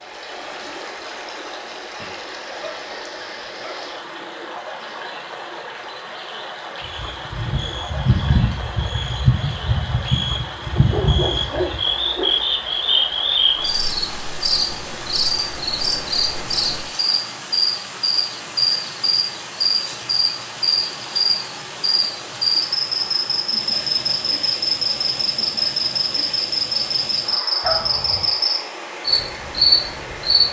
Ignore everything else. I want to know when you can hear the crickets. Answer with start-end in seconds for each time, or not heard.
6.8-30.4.